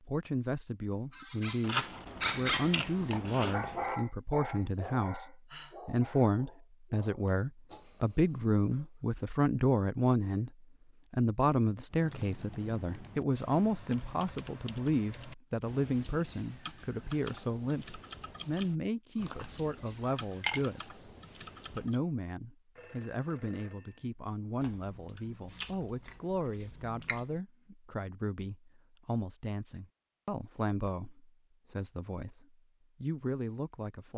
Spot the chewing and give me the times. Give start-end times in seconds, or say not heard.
1.6-4.0, 19.2-20.6, 24.6-27.4.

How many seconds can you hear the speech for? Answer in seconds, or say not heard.
33 s.